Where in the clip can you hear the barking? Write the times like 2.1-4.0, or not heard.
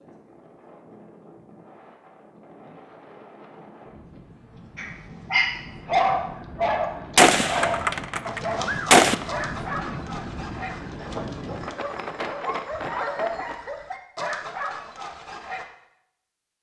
4.8-15.7.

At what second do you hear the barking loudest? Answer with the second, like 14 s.
6 s.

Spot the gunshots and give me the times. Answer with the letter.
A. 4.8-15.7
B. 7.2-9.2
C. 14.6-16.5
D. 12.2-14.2
B.